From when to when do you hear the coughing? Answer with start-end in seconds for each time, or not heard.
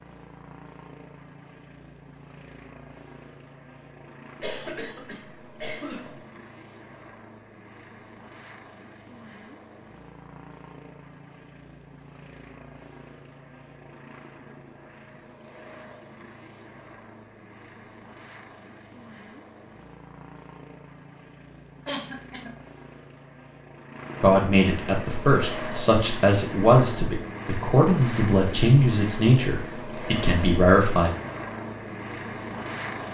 4.4-6.2, 21.9-22.5.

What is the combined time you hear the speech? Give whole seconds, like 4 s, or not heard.
7 s.